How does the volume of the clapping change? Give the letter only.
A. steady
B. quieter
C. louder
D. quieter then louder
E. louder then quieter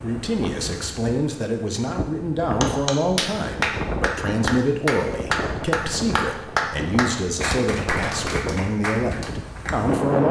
B.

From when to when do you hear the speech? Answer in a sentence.
The speech can be heard from 0.0 to 10.2 s.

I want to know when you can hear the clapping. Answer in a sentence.
You can hear the clapping from 2.6 to 9.8 s.